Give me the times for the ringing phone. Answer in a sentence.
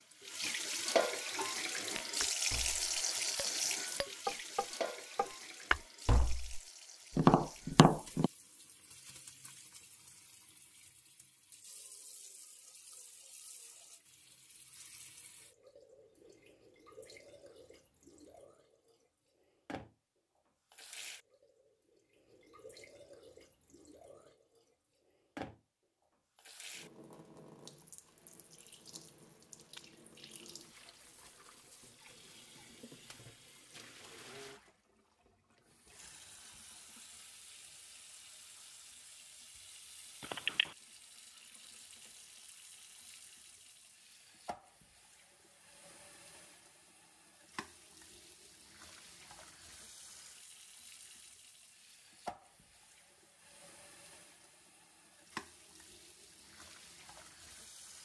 You can hear the ringing phone from 40.2 to 40.8 s.